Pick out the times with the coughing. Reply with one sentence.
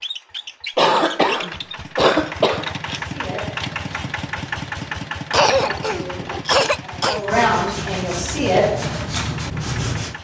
You can hear the coughing from 0.8 to 2.8 s and from 5.3 to 7.2 s.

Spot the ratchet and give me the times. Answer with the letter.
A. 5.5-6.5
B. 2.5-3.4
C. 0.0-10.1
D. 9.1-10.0
A.